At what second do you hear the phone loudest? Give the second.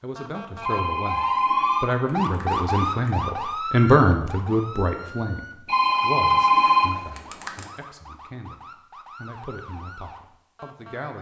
7 s.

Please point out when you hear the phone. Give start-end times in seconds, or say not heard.
0.6-3.1, 5.7-7.7.